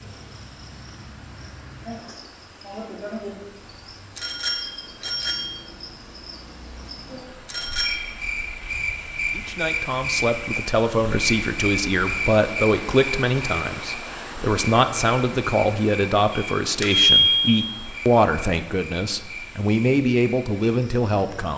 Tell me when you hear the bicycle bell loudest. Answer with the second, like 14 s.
17 s.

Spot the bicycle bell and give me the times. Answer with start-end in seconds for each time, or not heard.
4.2-5.5, 7.5-8.1, 16.3-17.8.